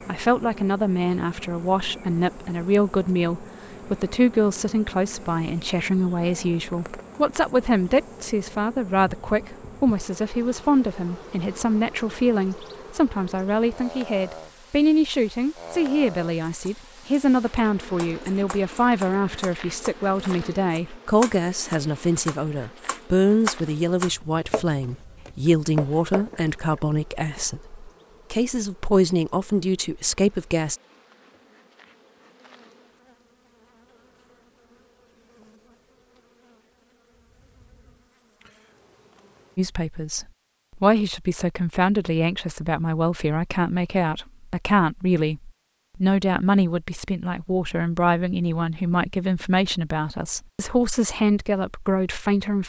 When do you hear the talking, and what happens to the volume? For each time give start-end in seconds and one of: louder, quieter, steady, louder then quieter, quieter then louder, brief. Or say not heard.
0.1-30.8 steady
39.5-52.6 steady.